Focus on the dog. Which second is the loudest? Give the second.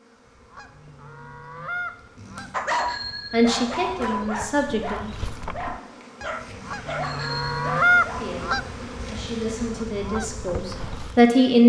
3 s.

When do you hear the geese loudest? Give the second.
8 s.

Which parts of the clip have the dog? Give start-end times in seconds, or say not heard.
2.5-8.3.